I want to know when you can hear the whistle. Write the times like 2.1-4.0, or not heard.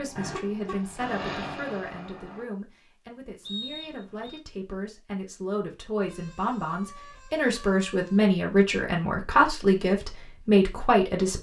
3.5-4.4.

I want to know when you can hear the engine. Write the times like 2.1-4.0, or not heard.
0.0-2.5.